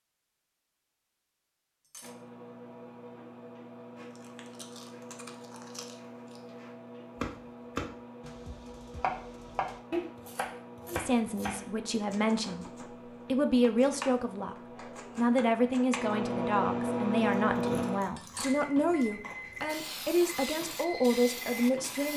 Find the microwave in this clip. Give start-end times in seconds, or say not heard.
2.0-22.1.